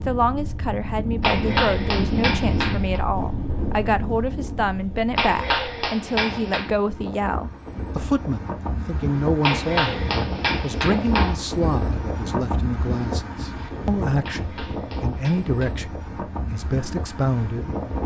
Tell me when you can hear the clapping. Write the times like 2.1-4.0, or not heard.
1.2-3.0, 5.2-6.7, 9.4-11.3, 14.2-15.8.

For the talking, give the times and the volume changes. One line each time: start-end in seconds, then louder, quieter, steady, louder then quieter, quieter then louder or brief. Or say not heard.
0.1-17.8 steady.